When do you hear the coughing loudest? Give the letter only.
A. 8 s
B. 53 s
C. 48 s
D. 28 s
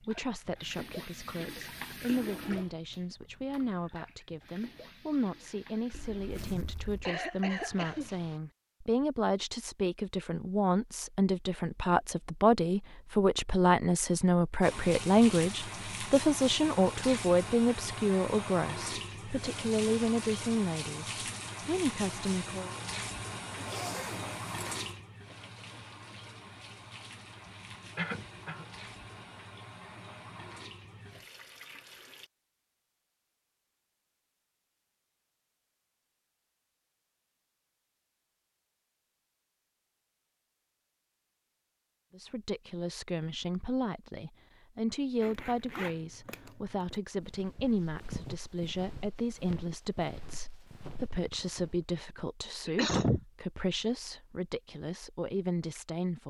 B.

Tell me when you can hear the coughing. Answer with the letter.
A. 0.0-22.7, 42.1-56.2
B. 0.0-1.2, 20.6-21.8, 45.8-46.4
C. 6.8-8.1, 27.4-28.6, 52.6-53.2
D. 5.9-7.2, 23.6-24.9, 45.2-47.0
C.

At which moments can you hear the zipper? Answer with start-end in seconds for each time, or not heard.
5.9-7.2, 23.6-24.9, 45.2-47.0.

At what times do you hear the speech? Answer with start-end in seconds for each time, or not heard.
0.0-22.7, 42.1-56.2.